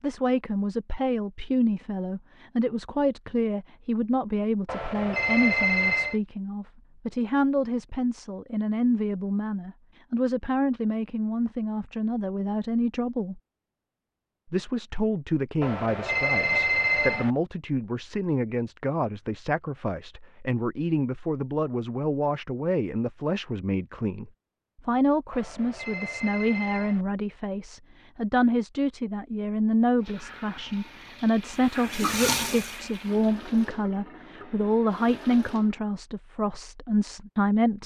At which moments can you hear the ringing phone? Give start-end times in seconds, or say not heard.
4.7-6.2, 15.6-17.3, 25.3-27.1.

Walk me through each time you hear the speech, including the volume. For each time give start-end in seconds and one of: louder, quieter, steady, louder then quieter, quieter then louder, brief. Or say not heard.
0.0-13.4 steady
14.5-37.8 steady.